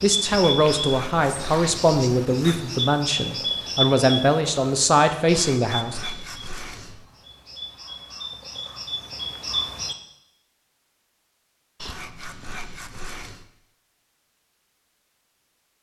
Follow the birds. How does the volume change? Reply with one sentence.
The loudness of the birds goes down, then up.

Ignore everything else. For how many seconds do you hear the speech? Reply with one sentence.
The speech can be heard for 6 seconds in total.